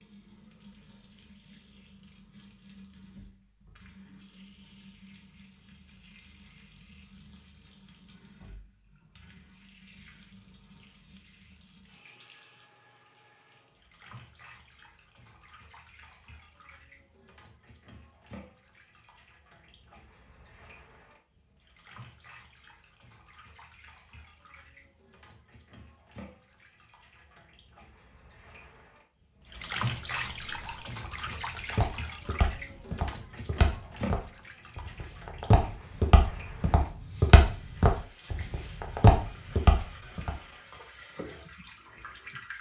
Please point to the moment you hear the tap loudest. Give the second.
30 s.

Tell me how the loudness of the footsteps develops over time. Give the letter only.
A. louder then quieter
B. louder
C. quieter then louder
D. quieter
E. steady
B.